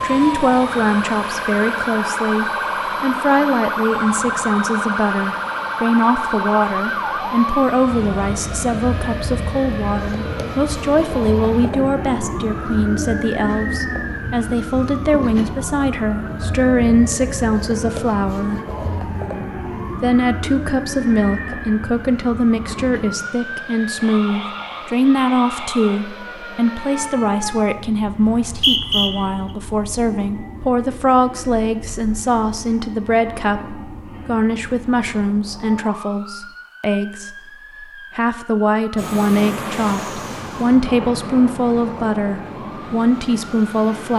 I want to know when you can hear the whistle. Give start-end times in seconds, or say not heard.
28.2-29.1.